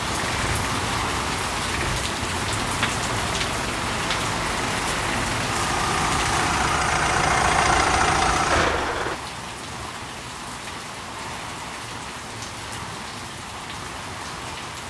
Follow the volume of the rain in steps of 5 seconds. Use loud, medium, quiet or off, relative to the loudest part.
loud, loud, medium.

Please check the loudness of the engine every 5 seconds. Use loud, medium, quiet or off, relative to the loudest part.
medium, loud, off.